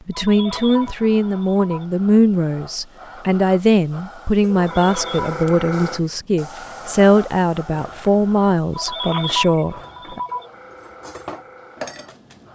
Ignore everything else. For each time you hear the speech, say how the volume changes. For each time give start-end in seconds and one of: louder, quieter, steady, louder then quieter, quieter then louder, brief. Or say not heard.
0.1-10.2 steady.